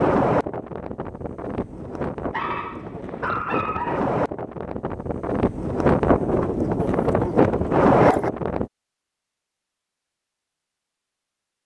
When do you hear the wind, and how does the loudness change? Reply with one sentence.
The wind can be heard from 0.0 to 8.7 s, getting louder.